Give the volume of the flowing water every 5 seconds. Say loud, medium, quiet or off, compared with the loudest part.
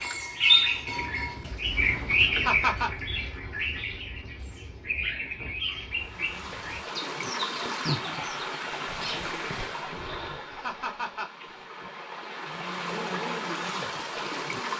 off, loud, loud.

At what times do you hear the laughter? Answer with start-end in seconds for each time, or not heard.
2.3-2.9, 10.5-11.3.